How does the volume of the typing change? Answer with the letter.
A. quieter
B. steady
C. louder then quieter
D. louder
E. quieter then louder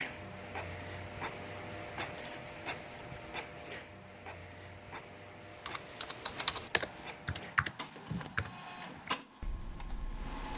A.